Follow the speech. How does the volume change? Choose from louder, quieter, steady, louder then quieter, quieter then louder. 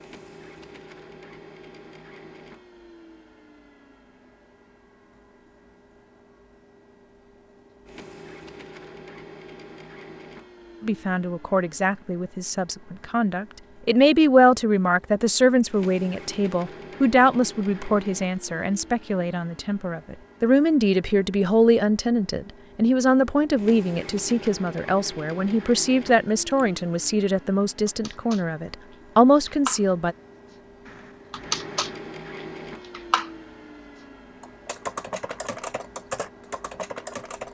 steady.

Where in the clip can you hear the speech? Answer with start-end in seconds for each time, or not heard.
10.8-30.1.